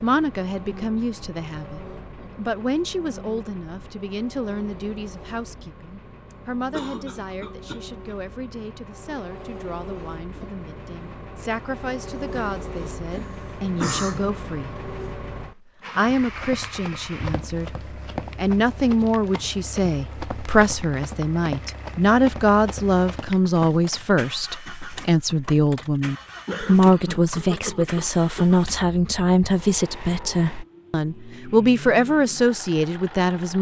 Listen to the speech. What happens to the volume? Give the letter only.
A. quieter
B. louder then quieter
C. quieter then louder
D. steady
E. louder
C.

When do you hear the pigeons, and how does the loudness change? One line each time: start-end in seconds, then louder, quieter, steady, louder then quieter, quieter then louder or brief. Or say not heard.
not heard.